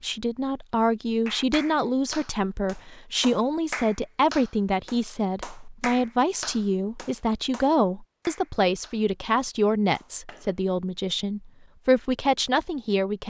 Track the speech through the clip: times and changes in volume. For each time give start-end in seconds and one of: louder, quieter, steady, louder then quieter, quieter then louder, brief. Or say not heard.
0.0-13.2 steady.